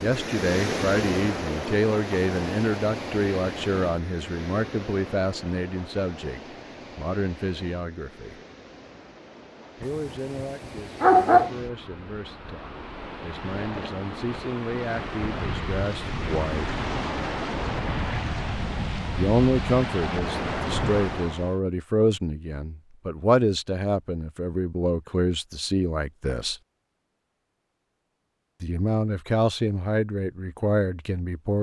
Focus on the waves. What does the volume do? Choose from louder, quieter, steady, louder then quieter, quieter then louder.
quieter then louder.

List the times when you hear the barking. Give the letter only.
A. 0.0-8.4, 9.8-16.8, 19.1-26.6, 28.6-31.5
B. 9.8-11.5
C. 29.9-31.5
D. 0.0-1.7
B.